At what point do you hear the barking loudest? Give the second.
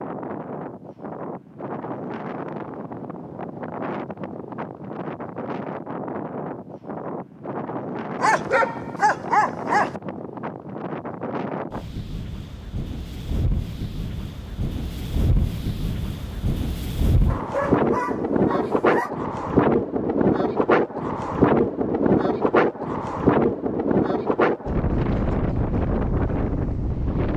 9 s.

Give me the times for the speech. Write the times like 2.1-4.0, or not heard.
not heard.